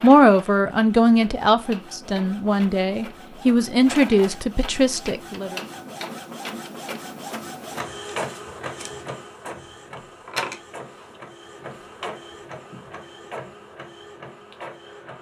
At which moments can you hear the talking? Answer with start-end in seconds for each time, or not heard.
0.0-5.5.